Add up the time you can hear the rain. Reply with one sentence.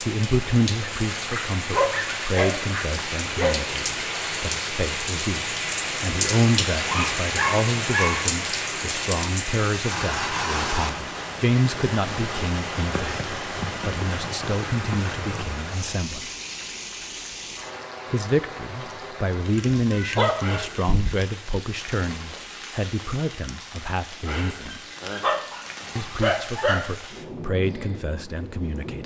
The rain can be heard for 29 seconds in total.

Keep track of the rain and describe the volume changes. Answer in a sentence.
The volume of the rain goes down.